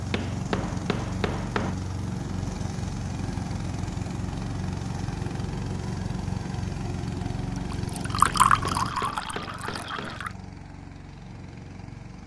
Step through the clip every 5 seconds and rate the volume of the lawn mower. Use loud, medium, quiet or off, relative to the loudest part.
loud, loud, medium.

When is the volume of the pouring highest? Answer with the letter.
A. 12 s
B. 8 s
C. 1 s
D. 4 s
B.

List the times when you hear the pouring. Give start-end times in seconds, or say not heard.
7.7-10.3.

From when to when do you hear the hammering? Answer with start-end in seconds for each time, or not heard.
0.1-1.8, 8.2-10.2.